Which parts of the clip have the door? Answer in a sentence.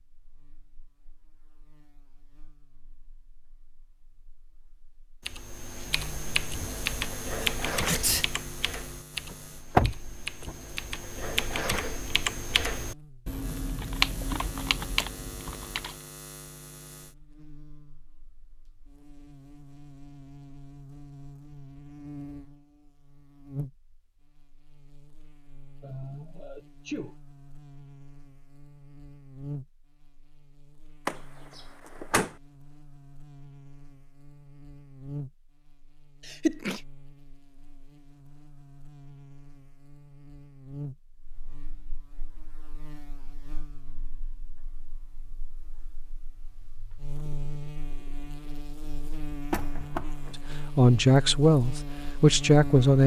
You can hear the door from 9.3 to 10.6 s, from 31.1 to 32.4 s and from 49.5 to 50.4 s.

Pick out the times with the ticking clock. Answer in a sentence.
The ticking clock can't be heard in this clip.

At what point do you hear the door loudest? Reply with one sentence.
The loudest moment of the door is at 10 seconds.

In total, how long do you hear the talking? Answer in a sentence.
The talking can be heard for 2 seconds in total.